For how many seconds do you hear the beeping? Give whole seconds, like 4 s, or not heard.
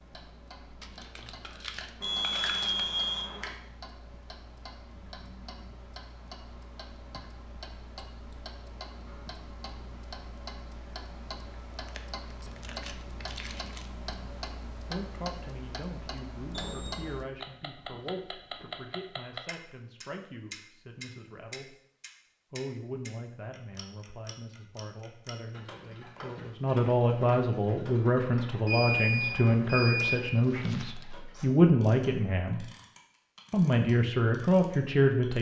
4 s.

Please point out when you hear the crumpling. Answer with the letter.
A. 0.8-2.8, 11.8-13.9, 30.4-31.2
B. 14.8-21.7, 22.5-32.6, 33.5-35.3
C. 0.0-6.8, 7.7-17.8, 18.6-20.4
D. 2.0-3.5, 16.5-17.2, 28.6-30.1
A.